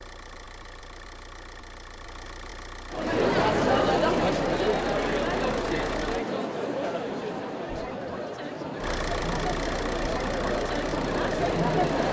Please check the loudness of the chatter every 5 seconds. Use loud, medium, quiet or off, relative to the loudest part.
loud, medium, loud.